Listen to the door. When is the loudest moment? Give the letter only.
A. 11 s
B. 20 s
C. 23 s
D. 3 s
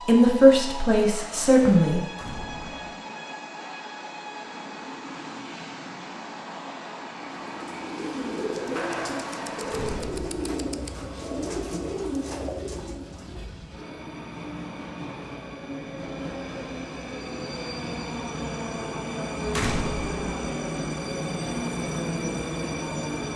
B.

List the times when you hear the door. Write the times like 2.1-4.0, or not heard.
2.1-3.0, 9.7-10.3, 19.5-20.1.